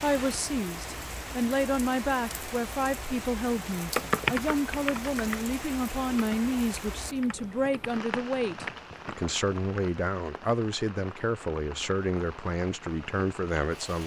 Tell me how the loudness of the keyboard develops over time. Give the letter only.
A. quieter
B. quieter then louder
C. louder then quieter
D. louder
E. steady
A.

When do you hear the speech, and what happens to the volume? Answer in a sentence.
You can hear the speech from 0.0 to 14.0 s, at a steady volume.